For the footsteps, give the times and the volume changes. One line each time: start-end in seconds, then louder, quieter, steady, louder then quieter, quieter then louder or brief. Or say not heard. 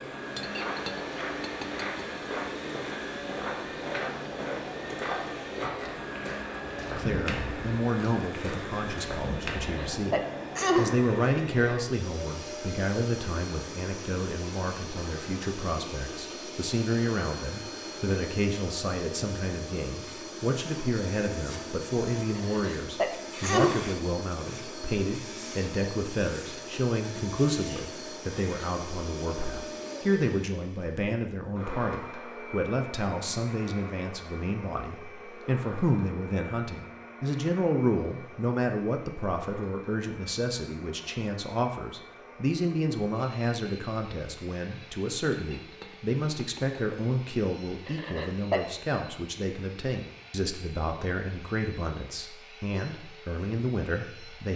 0.3-9.8 steady.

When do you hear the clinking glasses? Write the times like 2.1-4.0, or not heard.
0.3-1.9, 45.3-46.8.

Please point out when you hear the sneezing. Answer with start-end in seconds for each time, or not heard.
9.6-10.9, 22.4-23.9, 47.9-48.6.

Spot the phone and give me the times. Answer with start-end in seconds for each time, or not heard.
not heard.